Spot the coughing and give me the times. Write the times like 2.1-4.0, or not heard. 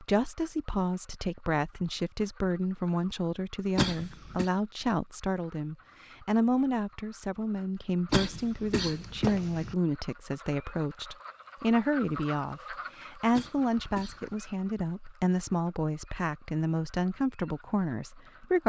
3.8-4.5, 8.1-9.8, 13.3-14.4.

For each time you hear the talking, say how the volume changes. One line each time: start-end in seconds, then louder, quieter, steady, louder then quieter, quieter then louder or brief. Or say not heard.
0.0-18.6 steady.